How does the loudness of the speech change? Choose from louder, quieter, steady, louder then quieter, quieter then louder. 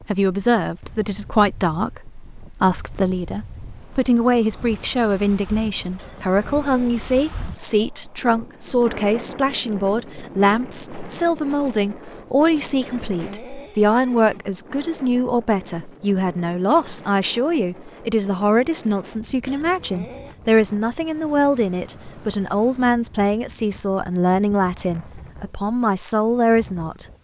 steady.